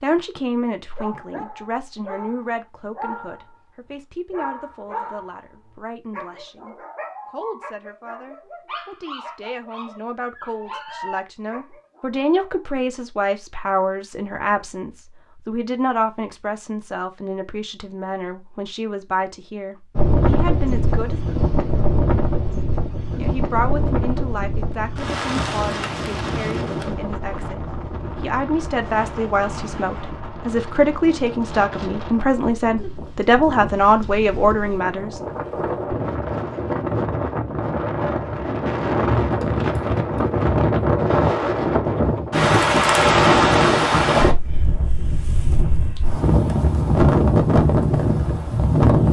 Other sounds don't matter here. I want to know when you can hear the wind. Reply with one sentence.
You can hear the wind from 19.9 to 49.0 s.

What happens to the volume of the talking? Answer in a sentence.
The loudness of the talking goes up.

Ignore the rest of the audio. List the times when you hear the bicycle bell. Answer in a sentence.
The bicycle bell can't be heard in this clip.